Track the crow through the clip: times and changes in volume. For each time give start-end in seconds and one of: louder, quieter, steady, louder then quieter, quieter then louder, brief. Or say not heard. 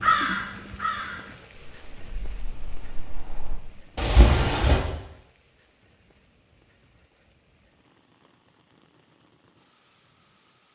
0.0-4.8 quieter then louder.